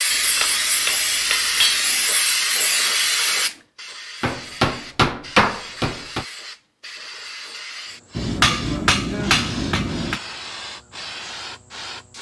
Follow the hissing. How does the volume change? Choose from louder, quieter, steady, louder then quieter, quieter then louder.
quieter.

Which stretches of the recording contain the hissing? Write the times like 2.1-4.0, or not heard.
0.0-12.1.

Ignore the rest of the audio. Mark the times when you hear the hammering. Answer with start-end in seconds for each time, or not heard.
0.1-2.1, 4.2-6.2, 8.2-10.2.